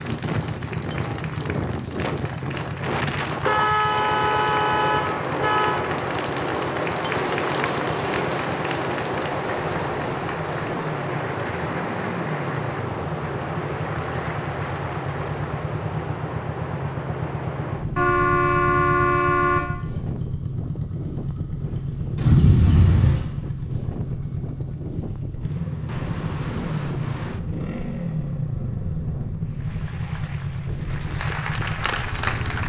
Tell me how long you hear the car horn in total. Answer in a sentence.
You can hear the car horn for 5 seconds altogether.